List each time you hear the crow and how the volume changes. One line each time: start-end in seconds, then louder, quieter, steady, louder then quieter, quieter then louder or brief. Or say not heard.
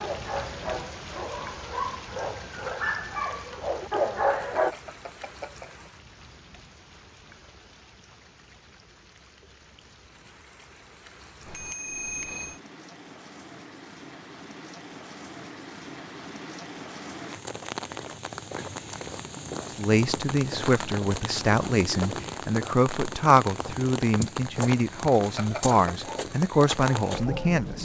not heard.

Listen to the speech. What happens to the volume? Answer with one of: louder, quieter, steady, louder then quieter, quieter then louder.
steady.